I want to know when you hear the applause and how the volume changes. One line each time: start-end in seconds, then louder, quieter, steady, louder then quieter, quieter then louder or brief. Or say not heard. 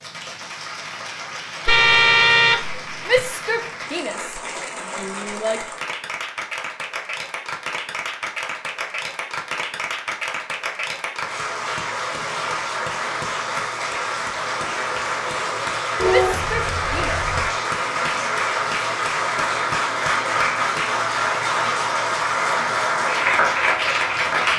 0.0-24.5 louder.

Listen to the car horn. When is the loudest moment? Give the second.
2 s.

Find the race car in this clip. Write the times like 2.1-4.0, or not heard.
not heard.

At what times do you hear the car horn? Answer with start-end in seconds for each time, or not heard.
1.6-3.3, 15.9-17.5.